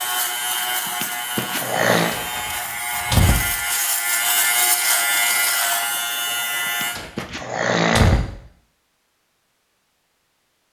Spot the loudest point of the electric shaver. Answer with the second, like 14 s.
5 s.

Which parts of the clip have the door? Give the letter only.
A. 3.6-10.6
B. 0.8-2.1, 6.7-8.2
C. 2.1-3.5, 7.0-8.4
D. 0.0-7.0
C.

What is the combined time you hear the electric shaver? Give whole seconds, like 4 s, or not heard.
7 s.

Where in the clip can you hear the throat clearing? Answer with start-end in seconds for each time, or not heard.
0.8-2.1, 6.7-8.2.